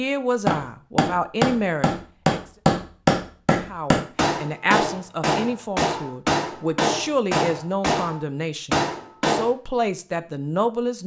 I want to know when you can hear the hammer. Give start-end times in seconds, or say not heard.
0.5-9.5.